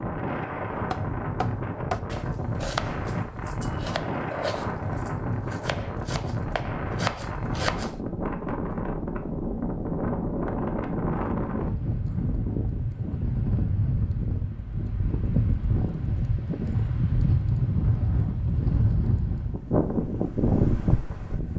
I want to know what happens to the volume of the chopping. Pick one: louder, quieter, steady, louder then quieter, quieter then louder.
quieter then louder.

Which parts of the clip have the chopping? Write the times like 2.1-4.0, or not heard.
0.9-8.0.